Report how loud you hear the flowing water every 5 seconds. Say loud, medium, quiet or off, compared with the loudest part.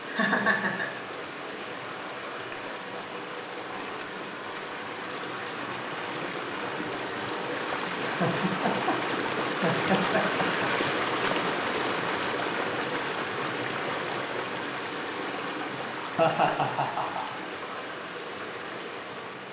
medium, loud, loud, medium.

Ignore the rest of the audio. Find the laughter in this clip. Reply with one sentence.
The laughter can be heard from 0.1 to 1.0 s, from 8.0 to 10.7 s and from 16.1 to 17.4 s.